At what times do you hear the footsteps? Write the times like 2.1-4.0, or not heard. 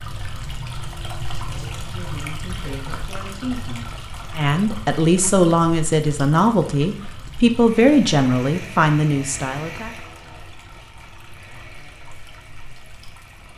not heard.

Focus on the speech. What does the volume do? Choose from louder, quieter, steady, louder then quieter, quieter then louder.
louder.